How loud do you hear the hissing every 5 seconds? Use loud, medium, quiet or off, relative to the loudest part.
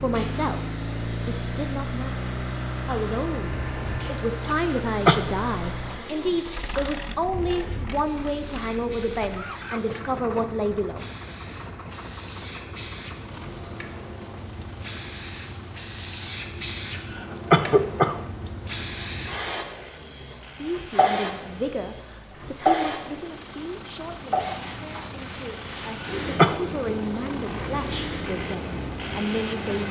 quiet, quiet, medium, loud, loud, medium.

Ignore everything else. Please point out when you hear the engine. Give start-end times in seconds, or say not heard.
0.0-29.8.